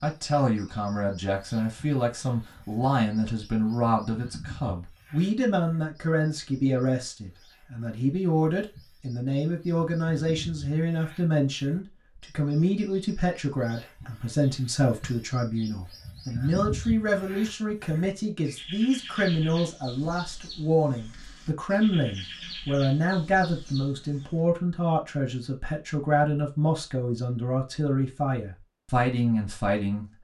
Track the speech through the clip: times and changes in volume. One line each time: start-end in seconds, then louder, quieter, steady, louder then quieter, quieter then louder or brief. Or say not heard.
0.0-30.1 steady.